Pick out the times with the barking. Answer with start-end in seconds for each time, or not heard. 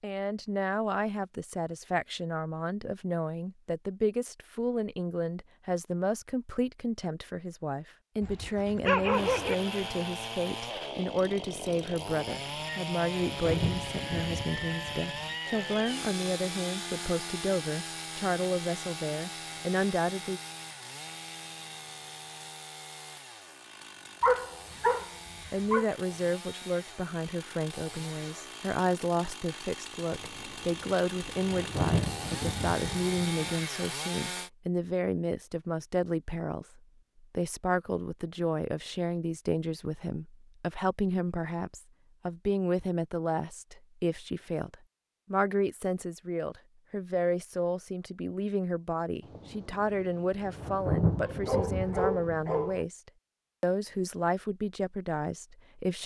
8.2-9.6, 24.2-25.9, 51.1-52.9.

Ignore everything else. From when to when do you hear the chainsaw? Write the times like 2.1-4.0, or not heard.
9.1-34.5.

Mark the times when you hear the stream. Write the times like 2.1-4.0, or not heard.
not heard.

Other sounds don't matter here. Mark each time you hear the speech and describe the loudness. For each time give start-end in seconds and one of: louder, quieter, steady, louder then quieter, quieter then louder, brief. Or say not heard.
0.0-20.4 steady
25.5-56.0 steady.